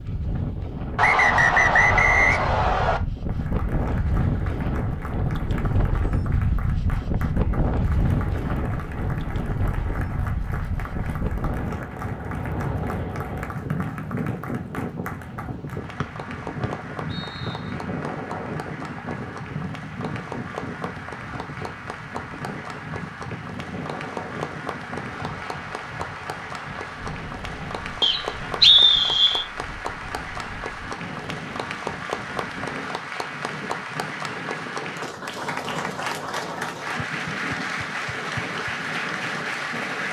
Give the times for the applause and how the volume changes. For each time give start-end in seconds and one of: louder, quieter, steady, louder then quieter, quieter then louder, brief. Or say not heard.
3.2-40.0 louder.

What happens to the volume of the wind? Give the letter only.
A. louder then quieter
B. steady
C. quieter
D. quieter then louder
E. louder
C.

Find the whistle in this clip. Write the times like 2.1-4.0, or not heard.
0.9-3.0, 16.0-17.6, 28.0-29.4.